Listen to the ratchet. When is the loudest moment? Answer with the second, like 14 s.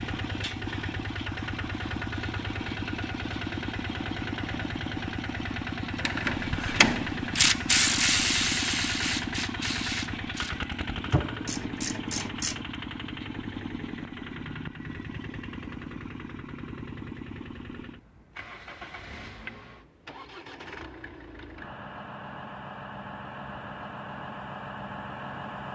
8 s.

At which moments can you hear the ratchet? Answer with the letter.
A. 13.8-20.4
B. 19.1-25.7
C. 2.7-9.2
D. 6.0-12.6
D.